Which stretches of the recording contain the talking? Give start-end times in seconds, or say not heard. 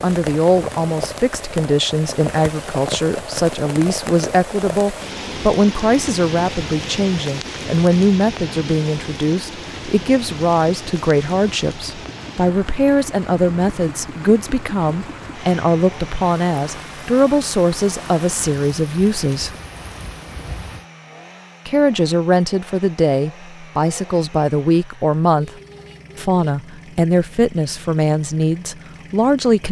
0.0-19.5, 21.6-25.5, 26.1-29.6.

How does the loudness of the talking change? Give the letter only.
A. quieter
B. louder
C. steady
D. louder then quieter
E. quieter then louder
C.